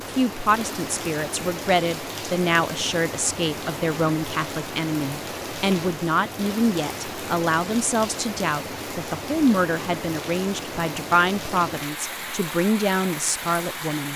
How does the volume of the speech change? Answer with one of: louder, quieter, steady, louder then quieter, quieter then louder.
steady.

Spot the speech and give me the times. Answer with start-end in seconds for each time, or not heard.
0.0-14.1.